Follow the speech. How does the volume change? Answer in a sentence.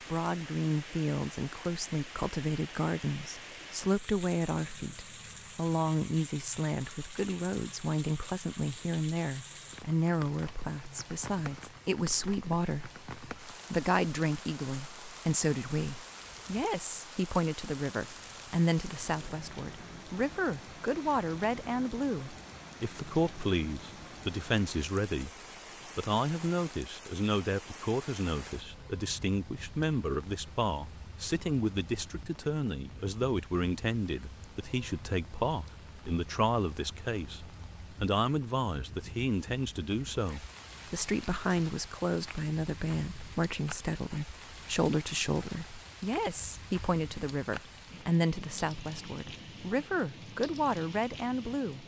The loudness of the speech stays about the same.